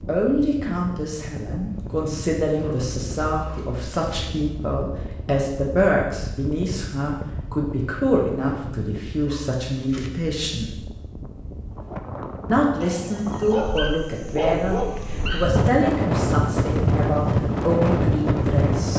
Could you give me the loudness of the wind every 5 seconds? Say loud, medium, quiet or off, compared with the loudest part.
quiet, quiet, quiet, loud.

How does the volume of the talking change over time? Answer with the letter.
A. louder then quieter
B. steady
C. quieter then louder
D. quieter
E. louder
B.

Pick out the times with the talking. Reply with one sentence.
The talking can be heard from 0.1 to 10.7 s and from 12.4 to 18.9 s.